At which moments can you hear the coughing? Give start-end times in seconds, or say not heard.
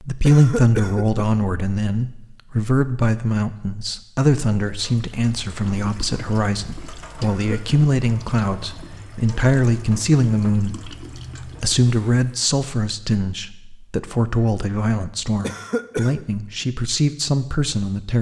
0.2-1.4, 7.2-7.8, 15.4-16.2.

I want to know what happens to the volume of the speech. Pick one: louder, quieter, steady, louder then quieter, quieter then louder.
steady.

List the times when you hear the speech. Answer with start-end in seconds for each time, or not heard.
0.0-18.1.